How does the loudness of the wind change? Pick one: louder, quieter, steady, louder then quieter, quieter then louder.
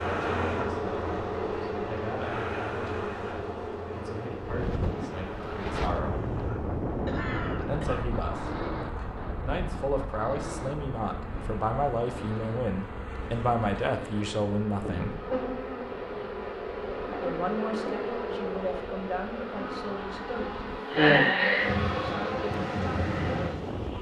quieter then louder.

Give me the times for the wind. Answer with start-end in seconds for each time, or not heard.
4.5-23.9.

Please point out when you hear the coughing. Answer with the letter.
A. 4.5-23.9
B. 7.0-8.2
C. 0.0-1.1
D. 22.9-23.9
B.